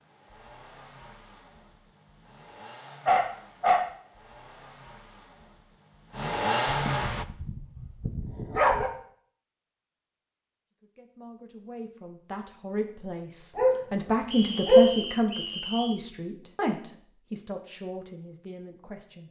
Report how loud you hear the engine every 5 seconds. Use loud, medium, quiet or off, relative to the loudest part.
quiet, loud, off, off.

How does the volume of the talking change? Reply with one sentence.
The loudness of the talking goes up, then down.